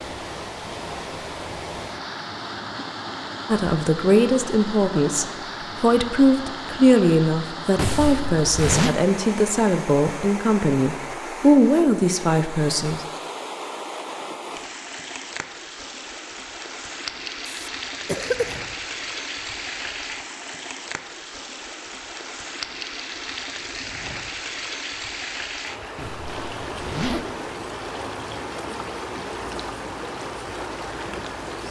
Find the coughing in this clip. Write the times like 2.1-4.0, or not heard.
17.4-18.6.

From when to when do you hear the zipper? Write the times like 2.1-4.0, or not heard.
7.8-8.9, 25.9-27.2.